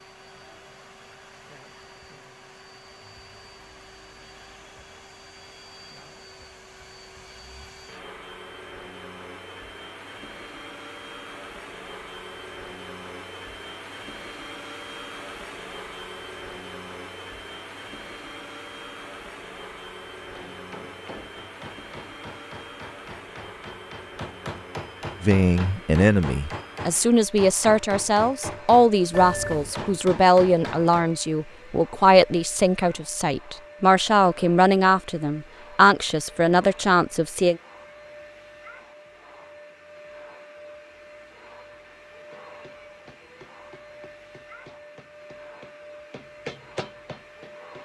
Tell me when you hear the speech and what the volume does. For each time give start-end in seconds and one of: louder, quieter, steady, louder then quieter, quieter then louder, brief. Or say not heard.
25.2-37.5 steady.